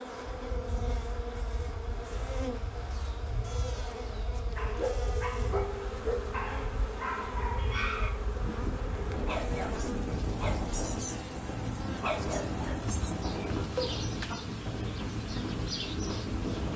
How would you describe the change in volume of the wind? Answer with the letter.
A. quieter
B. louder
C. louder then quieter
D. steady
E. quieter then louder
B.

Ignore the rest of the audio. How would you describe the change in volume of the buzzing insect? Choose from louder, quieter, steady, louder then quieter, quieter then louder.
steady.